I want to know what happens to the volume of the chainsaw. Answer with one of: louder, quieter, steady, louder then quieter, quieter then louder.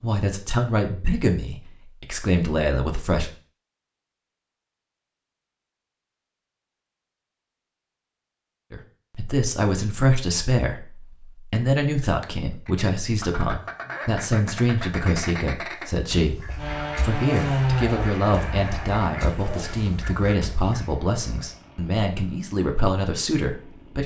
quieter.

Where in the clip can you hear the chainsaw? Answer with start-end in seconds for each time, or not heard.
16.6-24.0.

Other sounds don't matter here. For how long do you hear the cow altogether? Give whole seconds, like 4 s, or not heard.
not heard.